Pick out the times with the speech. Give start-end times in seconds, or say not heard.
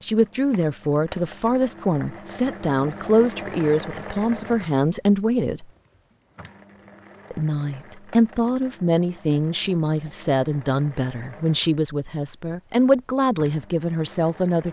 0.0-5.7, 7.3-14.6.